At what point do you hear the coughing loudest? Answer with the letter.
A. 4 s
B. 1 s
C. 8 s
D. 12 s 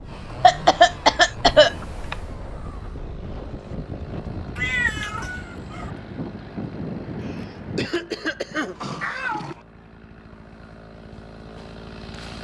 B.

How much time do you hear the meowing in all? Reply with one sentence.
The meowing can be heard for 3 seconds in total.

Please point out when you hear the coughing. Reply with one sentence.
You can hear the coughing from 0.4 to 2.1 s and from 7.2 to 8.8 s.